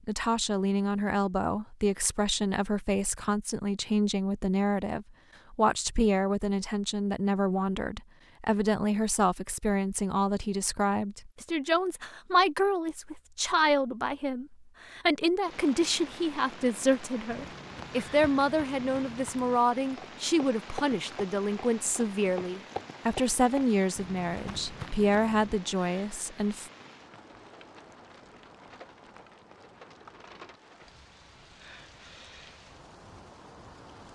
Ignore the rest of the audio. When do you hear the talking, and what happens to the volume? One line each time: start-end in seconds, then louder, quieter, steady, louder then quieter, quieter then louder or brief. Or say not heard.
0.1-26.7 steady.